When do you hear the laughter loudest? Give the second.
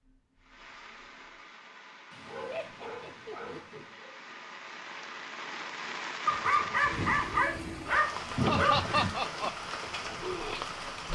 9 s.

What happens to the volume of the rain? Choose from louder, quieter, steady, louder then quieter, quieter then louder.
louder.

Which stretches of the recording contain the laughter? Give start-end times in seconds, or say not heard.
2.5-3.9, 8.4-9.5.